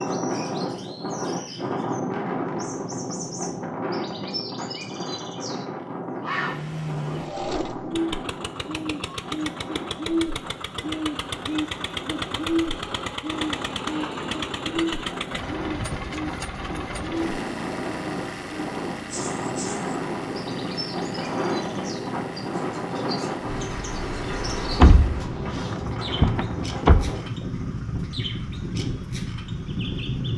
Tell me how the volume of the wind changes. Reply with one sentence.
The loudness of the wind goes down, then up.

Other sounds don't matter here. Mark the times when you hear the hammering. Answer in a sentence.
The hammering can't be heard in this clip.